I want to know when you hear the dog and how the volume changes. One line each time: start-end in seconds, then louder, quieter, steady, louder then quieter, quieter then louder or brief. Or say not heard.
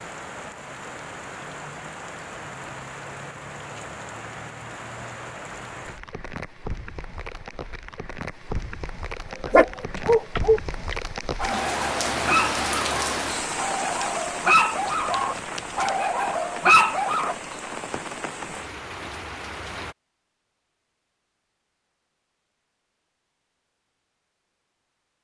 9.5-17.4 quieter then louder.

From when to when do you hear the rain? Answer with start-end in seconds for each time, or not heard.
0.0-19.9.